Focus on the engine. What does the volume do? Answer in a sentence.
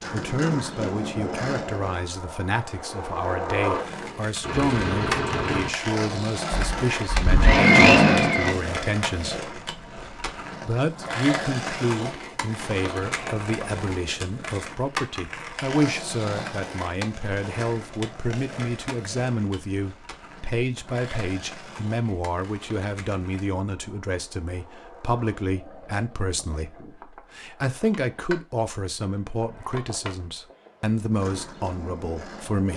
The volume of the engine goes down, then up.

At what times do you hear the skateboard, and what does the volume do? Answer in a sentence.
The skateboard can be heard from 0.0 to 32.7 s, getting quieter.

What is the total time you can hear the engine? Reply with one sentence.
You can hear the engine for 4 seconds altogether.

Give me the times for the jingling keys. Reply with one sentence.
You can't hear the jingling keys here.